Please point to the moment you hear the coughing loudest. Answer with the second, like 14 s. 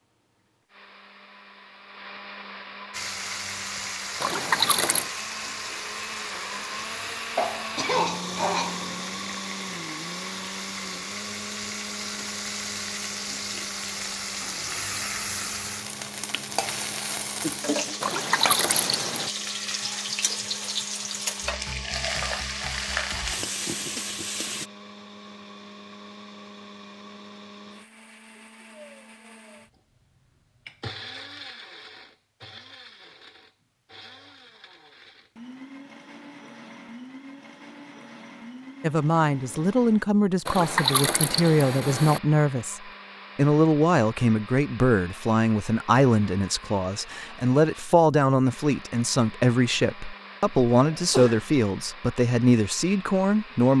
8 s.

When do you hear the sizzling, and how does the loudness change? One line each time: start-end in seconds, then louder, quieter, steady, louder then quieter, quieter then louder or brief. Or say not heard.
2.9-24.7 louder.